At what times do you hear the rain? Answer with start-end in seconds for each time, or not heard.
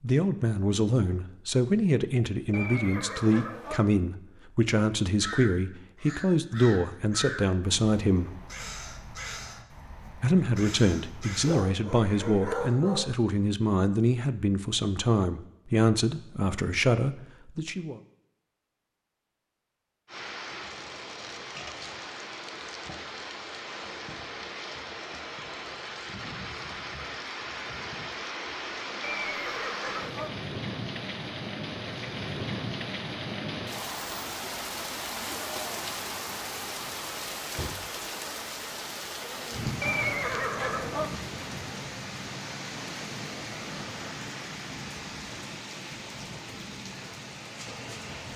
20.1-48.3.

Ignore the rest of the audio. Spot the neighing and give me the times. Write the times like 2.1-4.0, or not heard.
2.5-3.8, 29.0-30.3, 39.8-41.1.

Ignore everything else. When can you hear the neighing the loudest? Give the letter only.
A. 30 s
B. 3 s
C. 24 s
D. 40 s
D.